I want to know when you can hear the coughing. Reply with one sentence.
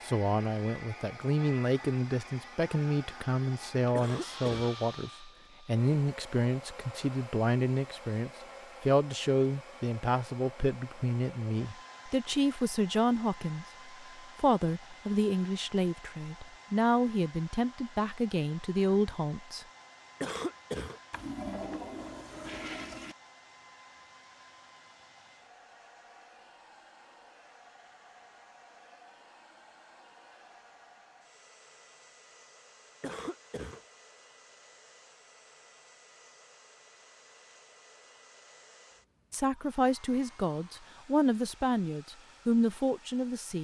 You can hear the coughing from 4.0 to 4.7 s, from 20.2 to 21.0 s and from 33.0 to 33.8 s.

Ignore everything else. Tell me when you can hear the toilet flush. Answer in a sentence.
You can hear the toilet flush from 21.1 to 23.1 s.